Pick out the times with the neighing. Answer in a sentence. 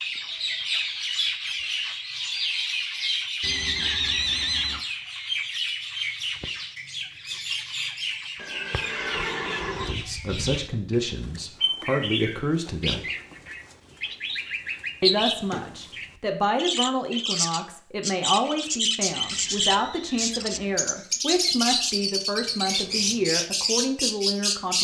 The neighing can be heard from 3.4 to 4.8 s, from 8.3 to 9.9 s and from 19.2 to 20.8 s.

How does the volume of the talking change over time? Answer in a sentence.
The volume of the talking stays about the same.